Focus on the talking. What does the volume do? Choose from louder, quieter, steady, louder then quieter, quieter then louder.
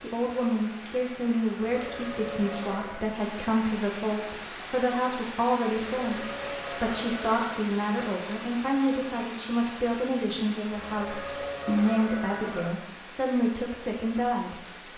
steady.